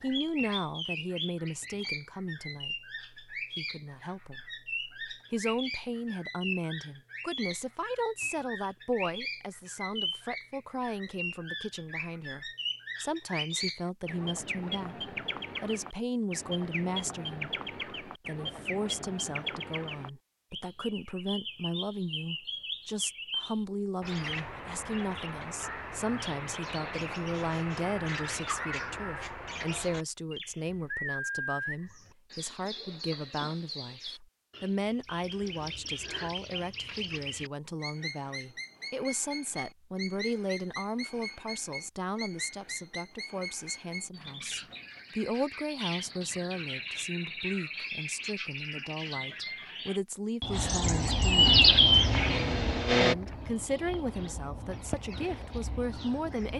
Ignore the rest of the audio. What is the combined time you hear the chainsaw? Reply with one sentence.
The chainsaw can be heard for 2 seconds in total.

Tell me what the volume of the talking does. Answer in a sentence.
The volume of the talking stays about the same.